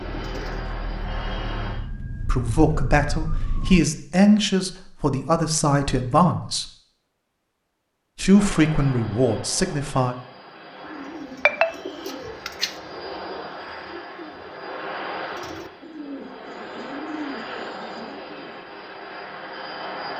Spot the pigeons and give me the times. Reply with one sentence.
You can hear the pigeons from 0.0 to 1.9 s and from 10.8 to 18.6 s.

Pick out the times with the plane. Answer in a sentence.
The plane can be heard from 0.0 to 1.8 s and from 8.3 to 20.1 s.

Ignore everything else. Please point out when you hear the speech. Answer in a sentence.
You can hear the speech from 2.2 to 6.7 s and from 8.2 to 10.2 s.